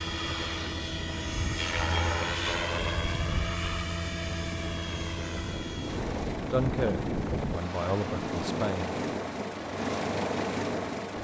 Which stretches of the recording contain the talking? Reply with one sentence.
You can hear the talking from 6.5 to 8.9 s.